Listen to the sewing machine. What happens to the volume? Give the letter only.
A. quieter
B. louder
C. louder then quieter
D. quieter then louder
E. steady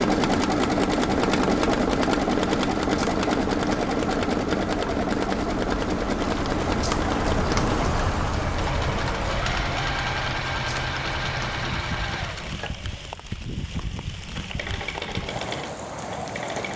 A.